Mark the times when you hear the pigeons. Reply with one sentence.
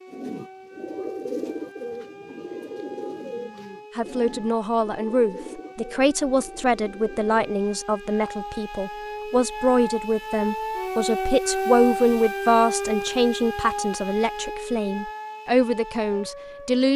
The pigeons can be heard from 0.1 to 7.8 s.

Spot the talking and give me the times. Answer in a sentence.
The talking can be heard from 4.0 to 16.9 s.